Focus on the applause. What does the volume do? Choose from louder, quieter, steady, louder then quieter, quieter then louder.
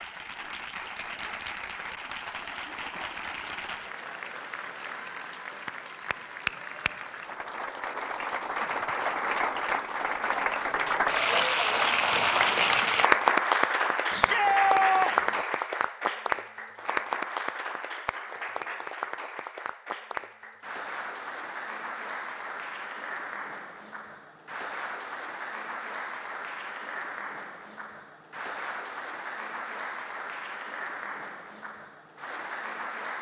louder then quieter.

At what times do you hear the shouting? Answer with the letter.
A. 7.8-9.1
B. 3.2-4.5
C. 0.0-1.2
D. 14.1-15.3
D.